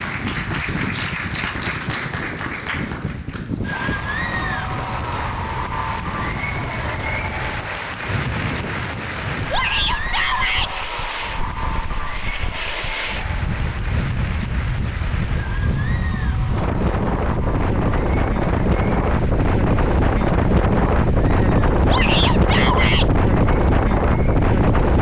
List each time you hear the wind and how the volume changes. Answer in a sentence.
You can hear the wind from 0.0 to 24.9 s, getting louder.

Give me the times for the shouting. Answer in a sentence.
The shouting can be heard from 9.5 to 10.7 s and from 21.9 to 23.1 s.